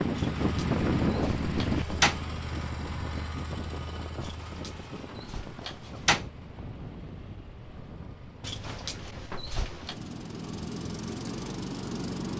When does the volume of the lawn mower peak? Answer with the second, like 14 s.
12 s.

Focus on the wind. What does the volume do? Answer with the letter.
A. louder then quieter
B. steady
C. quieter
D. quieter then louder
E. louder
C.